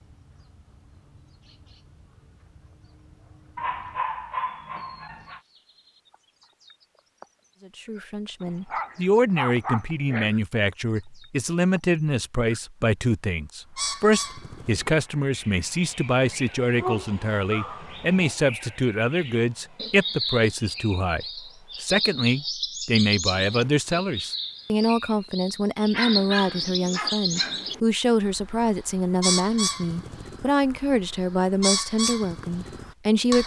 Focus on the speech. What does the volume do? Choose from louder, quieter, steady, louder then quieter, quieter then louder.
steady.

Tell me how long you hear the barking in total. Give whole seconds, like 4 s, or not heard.
7 s.